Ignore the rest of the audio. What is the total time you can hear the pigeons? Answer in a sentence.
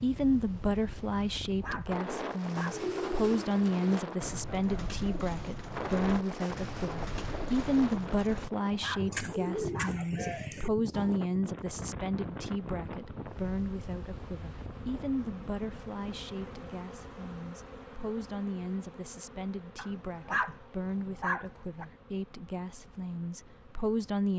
You can hear the pigeons for 9 seconds altogether.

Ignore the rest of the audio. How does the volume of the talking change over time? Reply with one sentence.
The volume of the talking goes down.